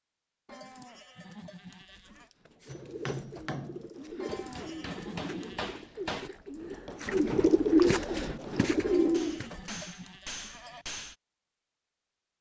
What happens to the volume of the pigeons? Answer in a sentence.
The loudness of the pigeons goes up.